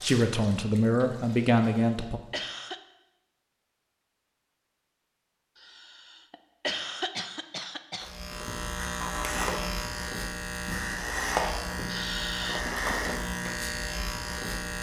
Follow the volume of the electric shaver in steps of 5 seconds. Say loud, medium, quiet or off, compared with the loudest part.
off, loud, loud.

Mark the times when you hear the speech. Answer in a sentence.
The speech can be heard from 0.0 to 2.2 s.